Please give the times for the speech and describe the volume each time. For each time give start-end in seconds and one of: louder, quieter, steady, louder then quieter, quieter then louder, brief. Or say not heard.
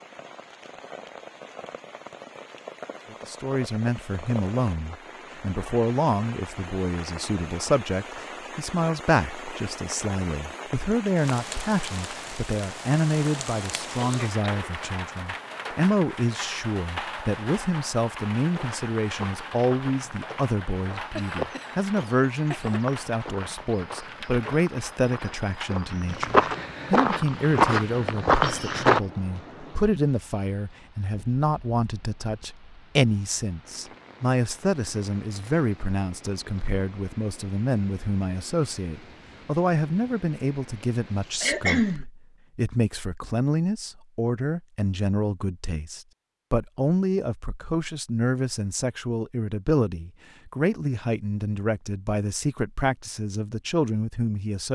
3.1-54.7 steady.